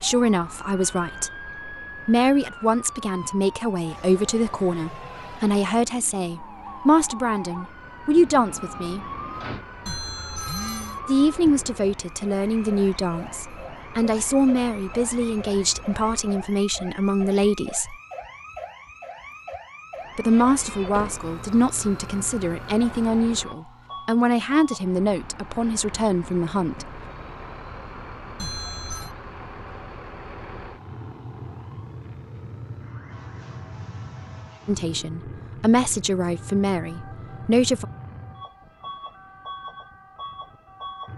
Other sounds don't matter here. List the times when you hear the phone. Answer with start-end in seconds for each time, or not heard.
9.8-11.0, 28.4-29.1.